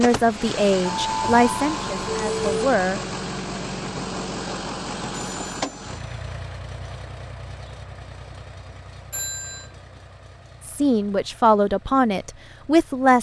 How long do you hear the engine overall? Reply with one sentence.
The engine can be heard for 13 seconds in total.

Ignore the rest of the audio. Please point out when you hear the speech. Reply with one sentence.
The speech can be heard from 0.0 to 3.0 s and from 10.7 to 13.1 s.